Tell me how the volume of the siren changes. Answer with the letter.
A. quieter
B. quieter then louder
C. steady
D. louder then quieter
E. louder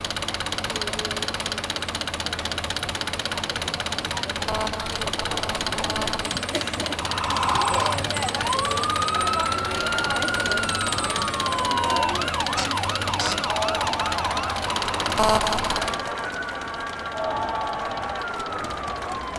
A.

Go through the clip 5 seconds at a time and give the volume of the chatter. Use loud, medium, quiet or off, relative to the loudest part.
medium, loud, loud, loud.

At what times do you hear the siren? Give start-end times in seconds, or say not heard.
7.0-19.3.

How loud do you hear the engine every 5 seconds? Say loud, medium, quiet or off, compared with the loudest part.
loud, loud, loud, medium.